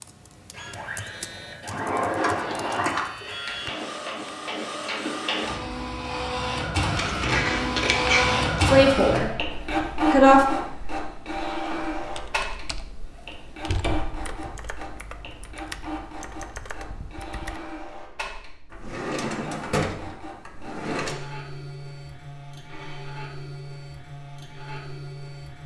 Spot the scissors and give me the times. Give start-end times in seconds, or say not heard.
7.0-8.6.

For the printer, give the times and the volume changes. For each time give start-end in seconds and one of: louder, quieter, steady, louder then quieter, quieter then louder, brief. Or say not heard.
0.0-25.6 louder then quieter.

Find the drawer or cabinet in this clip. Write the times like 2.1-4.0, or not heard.
1.7-3.0, 13.7-14.3, 18.7-21.2.